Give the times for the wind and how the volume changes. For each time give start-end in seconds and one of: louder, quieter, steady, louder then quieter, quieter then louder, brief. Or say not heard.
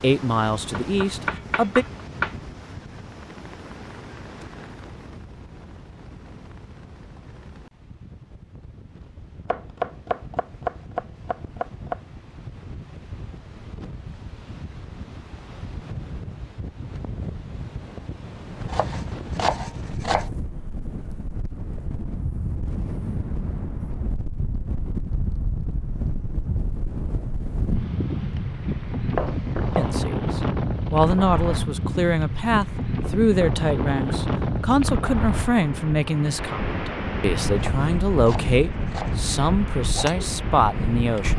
0.0-41.3 louder.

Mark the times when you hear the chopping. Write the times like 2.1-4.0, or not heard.
0.7-2.4, 9.4-12.0, 18.6-20.3, 29.1-30.0, 37.5-39.2.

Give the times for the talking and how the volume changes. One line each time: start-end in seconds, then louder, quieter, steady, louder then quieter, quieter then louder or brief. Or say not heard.
0.0-1.9 brief
29.8-41.3 steady.